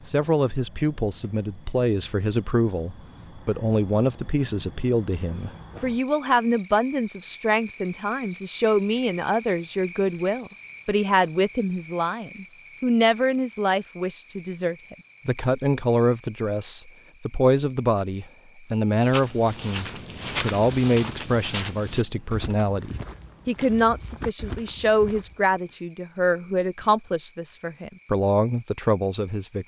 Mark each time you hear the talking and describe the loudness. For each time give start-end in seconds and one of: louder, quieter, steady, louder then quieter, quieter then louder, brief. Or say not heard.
0.1-29.6 steady.